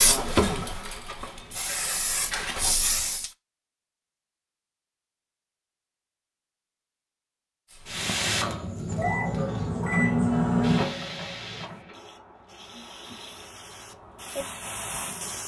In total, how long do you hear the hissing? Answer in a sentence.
The hissing can be heard for 11 seconds in total.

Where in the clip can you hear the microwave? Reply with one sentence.
You can hear the microwave from 8.8 to 11.7 s.